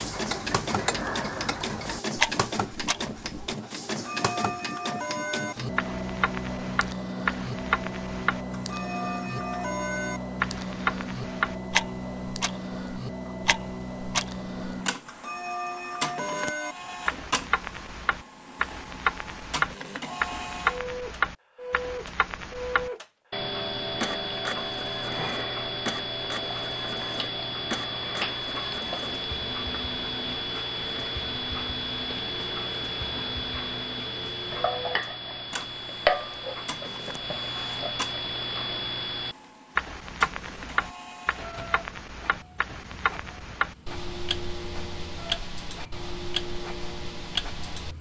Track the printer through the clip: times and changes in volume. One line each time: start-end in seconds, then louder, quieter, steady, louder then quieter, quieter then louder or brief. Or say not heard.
0.0-47.9 quieter.